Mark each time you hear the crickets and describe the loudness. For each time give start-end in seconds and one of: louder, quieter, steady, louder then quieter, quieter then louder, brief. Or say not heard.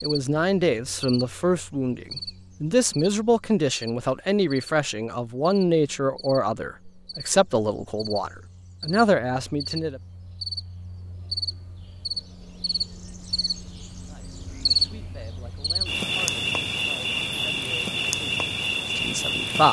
0.0-19.6 louder.